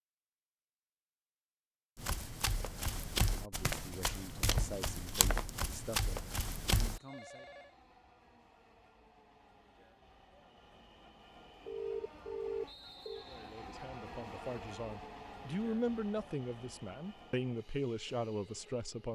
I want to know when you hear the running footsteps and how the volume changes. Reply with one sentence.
The running footsteps can be heard from 1.9 to 7.0 s, at a steady volume.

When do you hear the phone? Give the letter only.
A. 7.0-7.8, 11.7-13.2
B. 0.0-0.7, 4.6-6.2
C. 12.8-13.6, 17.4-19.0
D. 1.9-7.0
A.